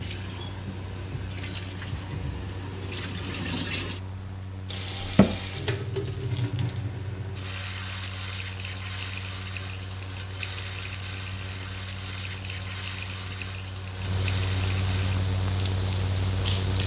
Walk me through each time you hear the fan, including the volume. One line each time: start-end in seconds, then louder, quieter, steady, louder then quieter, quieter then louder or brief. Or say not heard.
0.0-16.8 louder.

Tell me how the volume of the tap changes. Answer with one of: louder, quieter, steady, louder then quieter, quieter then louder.
louder then quieter.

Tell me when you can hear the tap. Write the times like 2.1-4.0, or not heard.
0.0-16.8.